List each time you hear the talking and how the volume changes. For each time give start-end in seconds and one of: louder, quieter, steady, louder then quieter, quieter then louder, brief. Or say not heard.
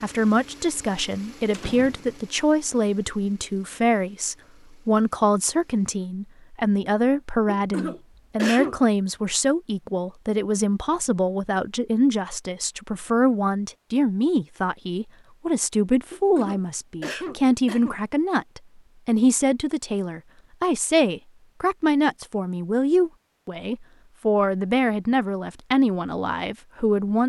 0.0-27.2 steady.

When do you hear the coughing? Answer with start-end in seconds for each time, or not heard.
7.5-8.8, 16.1-18.0.